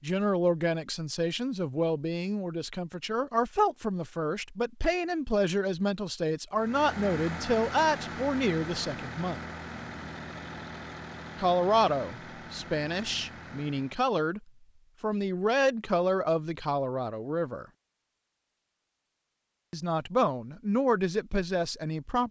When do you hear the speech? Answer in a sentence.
The speech can be heard from 0.0 to 9.4 s, from 11.3 to 14.4 s, from 15.0 to 17.6 s and from 19.7 to 22.2 s.